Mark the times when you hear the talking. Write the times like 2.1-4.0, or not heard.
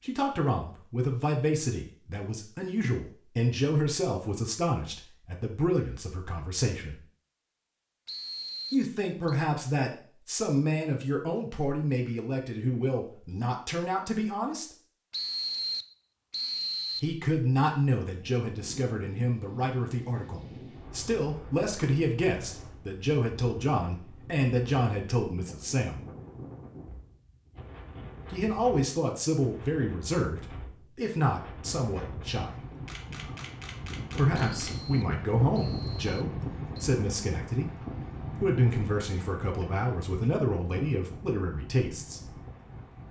0.0-7.0, 8.7-14.7, 16.9-26.1, 28.3-32.5, 34.1-42.4.